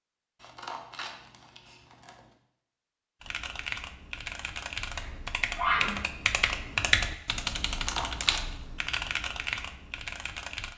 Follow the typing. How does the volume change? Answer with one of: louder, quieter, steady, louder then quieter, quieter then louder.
louder then quieter.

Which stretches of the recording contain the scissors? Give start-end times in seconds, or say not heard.
0.4-2.3, 7.7-8.6.